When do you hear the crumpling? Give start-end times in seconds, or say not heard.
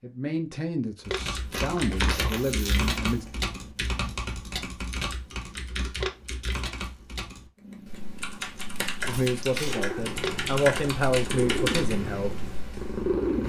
1.1-2.3, 6.0-6.6, 10.2-10.9.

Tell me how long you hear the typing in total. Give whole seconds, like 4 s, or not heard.
12 s.